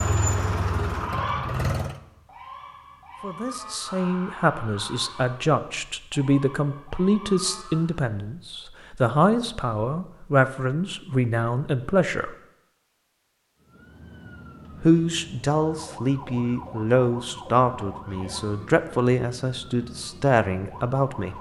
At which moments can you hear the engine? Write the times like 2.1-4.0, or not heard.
0.0-2.0.